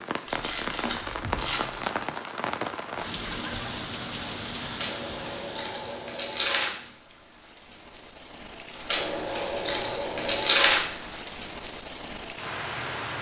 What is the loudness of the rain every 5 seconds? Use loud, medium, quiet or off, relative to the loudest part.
loud, medium, loud.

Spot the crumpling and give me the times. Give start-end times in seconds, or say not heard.
0.2-2.0, 4.8-6.7, 8.8-10.8.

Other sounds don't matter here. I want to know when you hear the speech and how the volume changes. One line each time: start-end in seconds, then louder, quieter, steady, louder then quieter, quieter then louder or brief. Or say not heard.
not heard.